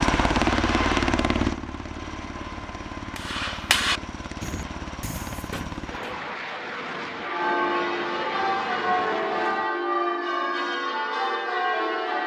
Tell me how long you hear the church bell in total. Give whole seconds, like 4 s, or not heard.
5 s.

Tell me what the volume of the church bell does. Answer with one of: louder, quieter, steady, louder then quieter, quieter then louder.
steady.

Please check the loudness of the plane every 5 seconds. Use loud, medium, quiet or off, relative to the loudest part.
loud, medium, off.